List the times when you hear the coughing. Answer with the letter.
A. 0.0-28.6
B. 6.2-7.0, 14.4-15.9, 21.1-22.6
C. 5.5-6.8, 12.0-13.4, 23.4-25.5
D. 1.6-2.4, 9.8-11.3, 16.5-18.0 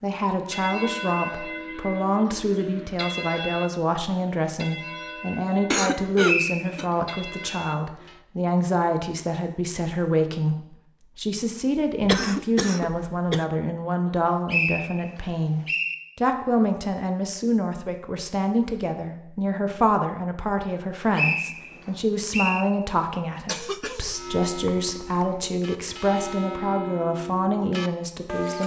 C.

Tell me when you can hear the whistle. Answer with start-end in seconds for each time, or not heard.
6.2-7.0, 14.4-15.9, 21.1-22.6.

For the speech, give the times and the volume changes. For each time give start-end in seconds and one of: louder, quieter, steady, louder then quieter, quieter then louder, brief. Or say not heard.
0.0-28.6 steady.